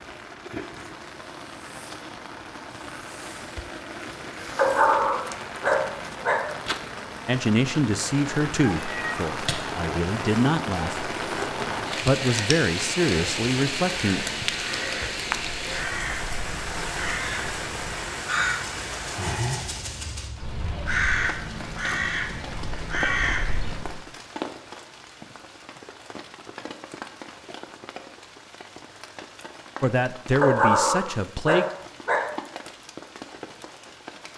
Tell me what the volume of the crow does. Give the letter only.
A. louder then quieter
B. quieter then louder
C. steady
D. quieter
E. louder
E.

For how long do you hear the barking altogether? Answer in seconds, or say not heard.
4 s.